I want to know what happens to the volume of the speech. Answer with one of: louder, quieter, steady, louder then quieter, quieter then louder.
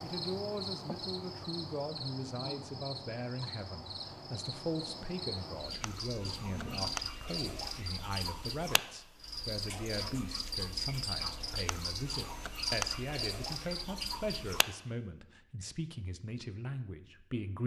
steady.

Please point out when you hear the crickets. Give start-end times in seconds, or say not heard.
0.0-14.7.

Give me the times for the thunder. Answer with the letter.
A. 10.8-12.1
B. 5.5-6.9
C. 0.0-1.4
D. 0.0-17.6
B.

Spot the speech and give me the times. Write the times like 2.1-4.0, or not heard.
0.0-17.6.